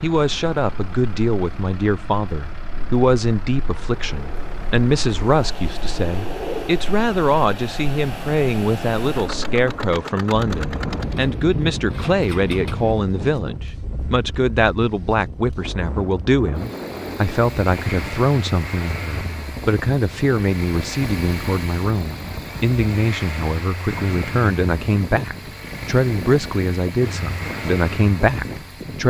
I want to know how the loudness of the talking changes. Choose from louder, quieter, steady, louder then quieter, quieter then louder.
steady.